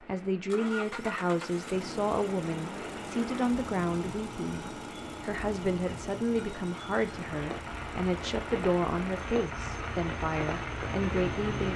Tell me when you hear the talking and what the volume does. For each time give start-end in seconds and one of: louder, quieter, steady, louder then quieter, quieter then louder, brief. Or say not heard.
0.0-11.7 steady.